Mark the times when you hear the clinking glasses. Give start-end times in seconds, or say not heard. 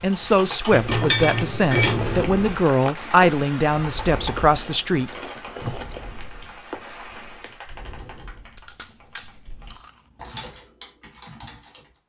0.7-2.3.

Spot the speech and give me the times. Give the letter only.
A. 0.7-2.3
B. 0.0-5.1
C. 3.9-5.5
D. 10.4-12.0
B.